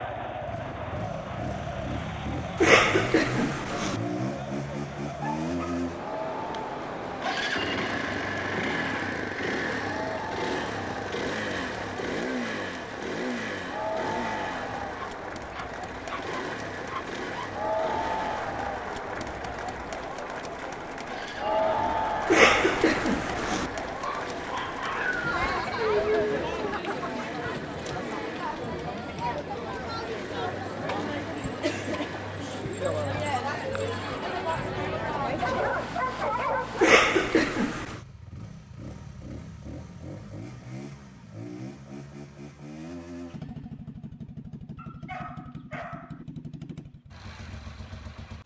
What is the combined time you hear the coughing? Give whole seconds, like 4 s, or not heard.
4 s.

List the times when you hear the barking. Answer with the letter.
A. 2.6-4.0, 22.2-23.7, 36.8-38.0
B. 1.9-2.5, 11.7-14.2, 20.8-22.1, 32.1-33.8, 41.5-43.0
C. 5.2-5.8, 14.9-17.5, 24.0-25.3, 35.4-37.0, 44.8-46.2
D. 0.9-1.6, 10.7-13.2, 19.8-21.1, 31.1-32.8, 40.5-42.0
C.